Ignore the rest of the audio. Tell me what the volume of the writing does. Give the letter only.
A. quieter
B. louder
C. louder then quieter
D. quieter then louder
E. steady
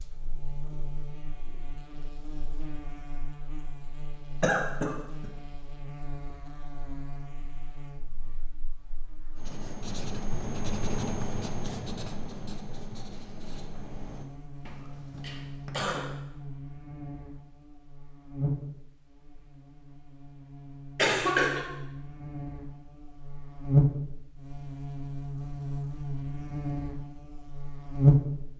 A.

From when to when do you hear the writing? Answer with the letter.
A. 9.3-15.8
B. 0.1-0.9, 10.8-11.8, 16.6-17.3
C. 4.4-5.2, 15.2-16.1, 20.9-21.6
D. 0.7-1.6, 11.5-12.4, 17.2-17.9
A.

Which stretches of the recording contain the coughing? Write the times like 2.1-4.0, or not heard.
4.4-5.2, 15.2-16.1, 20.9-21.6.